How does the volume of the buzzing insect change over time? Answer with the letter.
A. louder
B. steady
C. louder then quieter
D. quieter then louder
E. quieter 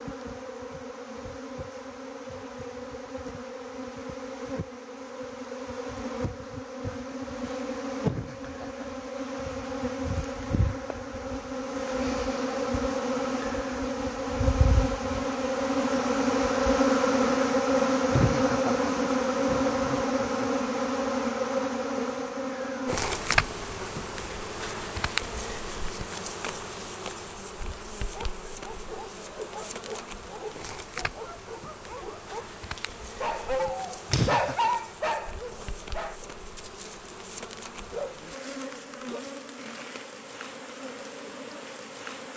C.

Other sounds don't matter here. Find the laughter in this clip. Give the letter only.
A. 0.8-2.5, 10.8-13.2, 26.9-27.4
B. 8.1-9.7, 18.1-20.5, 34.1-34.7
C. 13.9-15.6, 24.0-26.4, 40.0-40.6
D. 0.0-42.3
B.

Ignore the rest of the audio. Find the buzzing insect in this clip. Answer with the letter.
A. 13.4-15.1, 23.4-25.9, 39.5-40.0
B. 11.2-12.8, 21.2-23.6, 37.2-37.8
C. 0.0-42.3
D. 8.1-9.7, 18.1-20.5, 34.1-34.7
C.